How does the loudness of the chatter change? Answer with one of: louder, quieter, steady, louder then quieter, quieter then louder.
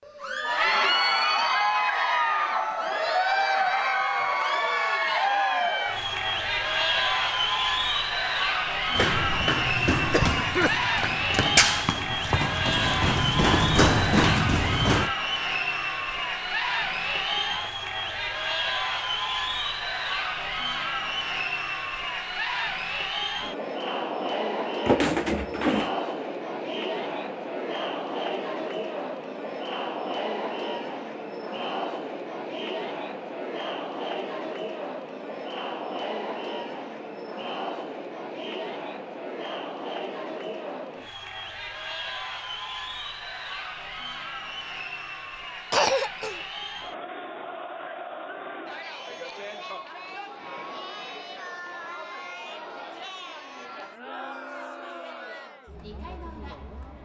quieter.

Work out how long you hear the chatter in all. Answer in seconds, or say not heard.
57 s.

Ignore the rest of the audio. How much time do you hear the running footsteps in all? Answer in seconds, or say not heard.
6 s.